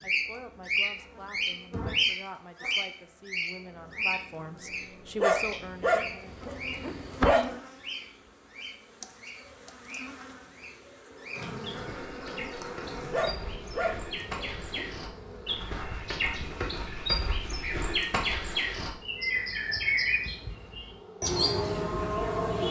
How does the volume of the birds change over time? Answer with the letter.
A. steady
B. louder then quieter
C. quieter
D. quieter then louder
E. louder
D.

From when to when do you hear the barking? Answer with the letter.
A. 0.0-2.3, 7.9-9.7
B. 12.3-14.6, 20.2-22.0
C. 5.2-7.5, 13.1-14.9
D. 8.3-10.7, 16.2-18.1
C.